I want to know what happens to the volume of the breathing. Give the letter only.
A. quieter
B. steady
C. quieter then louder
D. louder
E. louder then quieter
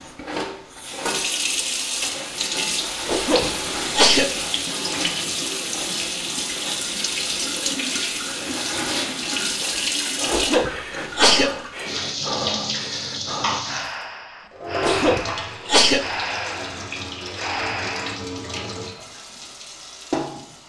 B.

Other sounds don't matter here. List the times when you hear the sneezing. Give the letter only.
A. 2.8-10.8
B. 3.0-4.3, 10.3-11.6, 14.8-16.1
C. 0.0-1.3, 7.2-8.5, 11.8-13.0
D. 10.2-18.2
B.